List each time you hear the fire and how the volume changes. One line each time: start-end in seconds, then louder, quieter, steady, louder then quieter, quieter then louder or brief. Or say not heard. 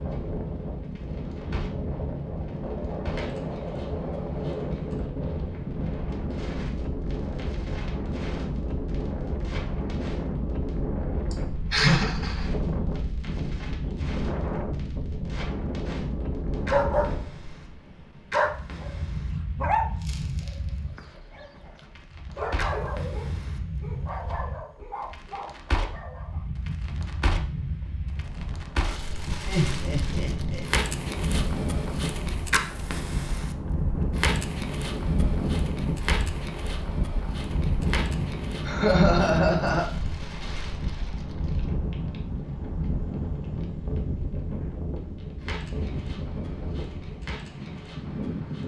0.0-48.6 louder then quieter.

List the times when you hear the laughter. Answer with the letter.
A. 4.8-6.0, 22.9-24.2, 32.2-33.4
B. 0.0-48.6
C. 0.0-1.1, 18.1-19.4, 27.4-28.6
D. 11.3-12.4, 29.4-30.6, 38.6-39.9
D.